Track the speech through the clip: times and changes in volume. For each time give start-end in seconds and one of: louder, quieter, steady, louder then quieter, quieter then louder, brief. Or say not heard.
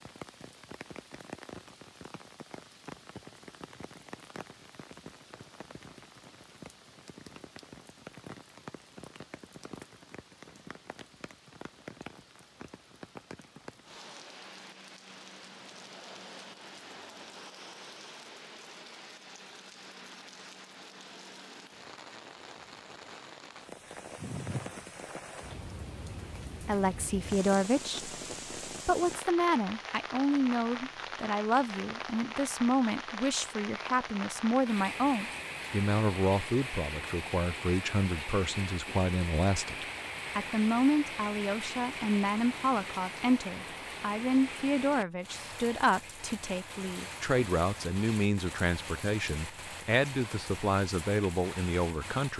26.6-52.3 steady.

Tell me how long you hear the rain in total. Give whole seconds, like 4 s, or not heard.
52 s.